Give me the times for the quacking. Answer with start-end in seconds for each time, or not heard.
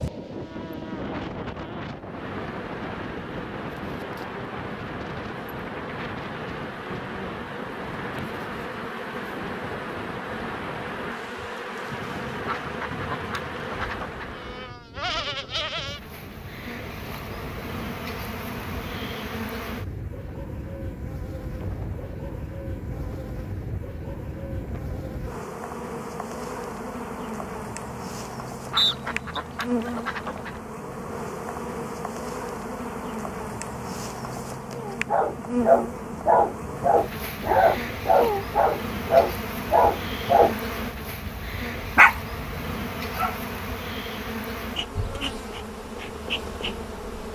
12.4-14.3, 28.7-30.6.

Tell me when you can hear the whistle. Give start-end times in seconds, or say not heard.
28.8-29.4.